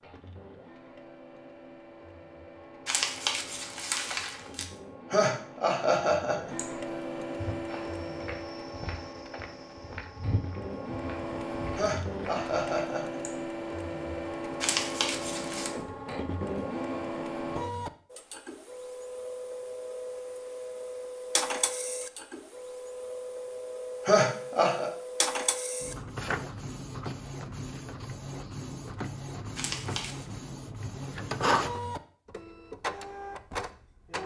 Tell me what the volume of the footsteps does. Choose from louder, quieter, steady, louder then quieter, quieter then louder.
louder then quieter.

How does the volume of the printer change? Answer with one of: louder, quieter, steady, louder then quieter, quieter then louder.
louder.